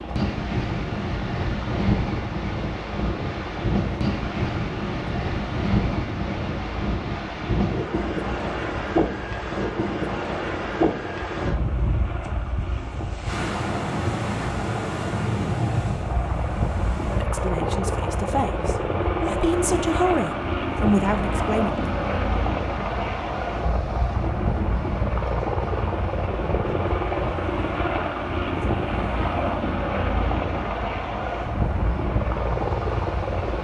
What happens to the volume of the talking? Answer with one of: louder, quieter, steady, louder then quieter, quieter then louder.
louder.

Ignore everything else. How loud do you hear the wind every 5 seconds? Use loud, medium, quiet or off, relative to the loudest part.
loud, loud, loud, loud, medium, medium, medium.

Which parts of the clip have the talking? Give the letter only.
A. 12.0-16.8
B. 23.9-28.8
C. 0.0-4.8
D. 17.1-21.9
D.